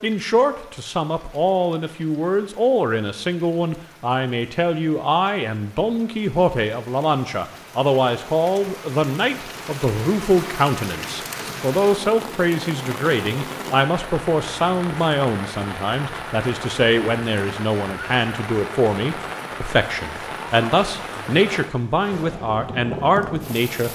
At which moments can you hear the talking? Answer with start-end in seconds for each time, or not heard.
0.0-23.9.